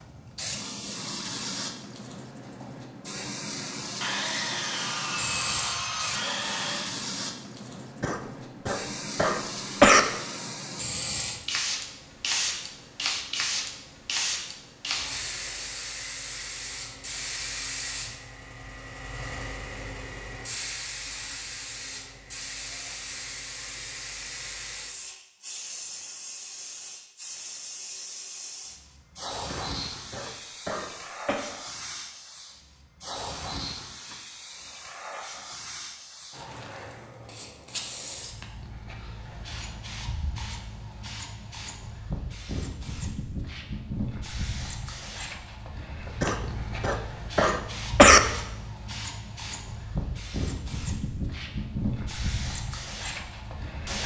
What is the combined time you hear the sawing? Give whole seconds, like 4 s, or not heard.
3 s.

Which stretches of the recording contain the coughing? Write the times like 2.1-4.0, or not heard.
8.0-10.0, 29.4-31.4, 46.2-48.2.